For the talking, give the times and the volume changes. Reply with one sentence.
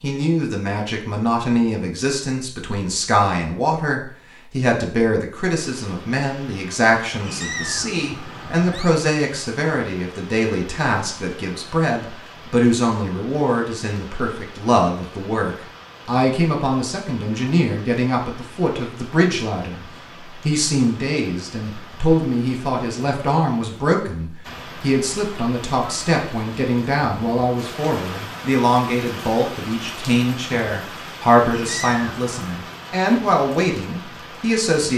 You can hear the talking from 0.0 to 34.9 s, at a steady volume.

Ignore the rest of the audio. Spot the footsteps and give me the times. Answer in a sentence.
The footsteps can't be heard in this clip.